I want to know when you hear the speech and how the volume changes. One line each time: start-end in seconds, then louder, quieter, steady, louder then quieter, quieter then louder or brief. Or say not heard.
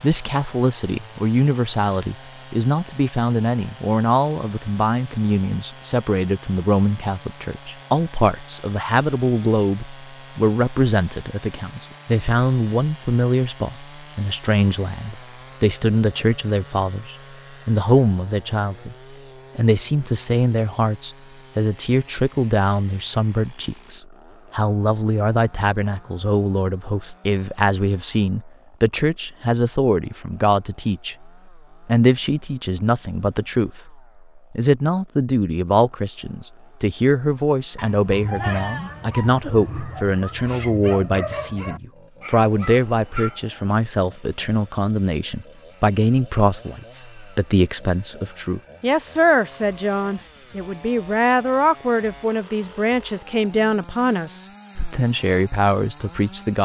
0.0-18.9 steady
19.6-56.6 steady.